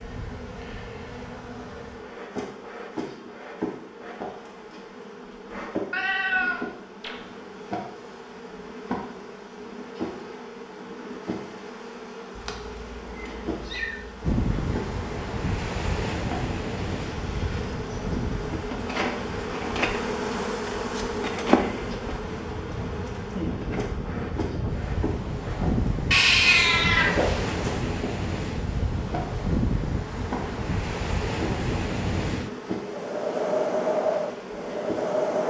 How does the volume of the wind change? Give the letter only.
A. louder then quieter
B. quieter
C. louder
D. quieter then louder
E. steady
D.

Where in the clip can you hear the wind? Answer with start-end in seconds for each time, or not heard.
14.2-35.4.